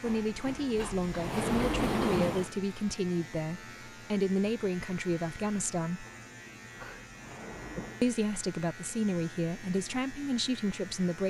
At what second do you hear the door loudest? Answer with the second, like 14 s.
2 s.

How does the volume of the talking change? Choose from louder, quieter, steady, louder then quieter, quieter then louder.
steady.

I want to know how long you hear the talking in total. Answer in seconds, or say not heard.
9 s.